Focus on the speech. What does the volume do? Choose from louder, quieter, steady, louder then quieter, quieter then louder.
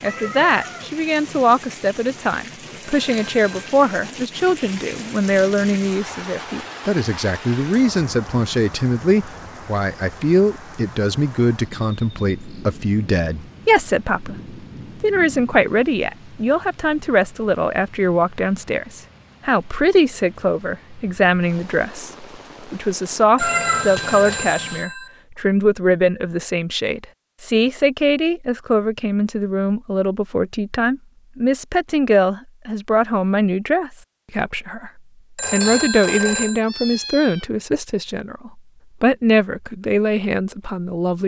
steady.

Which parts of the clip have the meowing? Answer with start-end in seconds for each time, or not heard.
0.1-0.9, 23.4-24.9, 35.6-37.5.